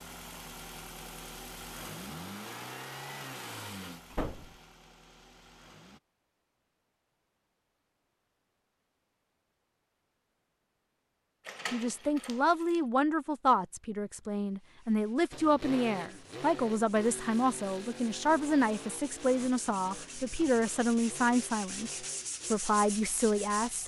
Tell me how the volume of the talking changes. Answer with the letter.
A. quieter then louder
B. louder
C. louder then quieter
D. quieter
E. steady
E.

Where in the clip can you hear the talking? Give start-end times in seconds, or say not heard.
11.7-23.8.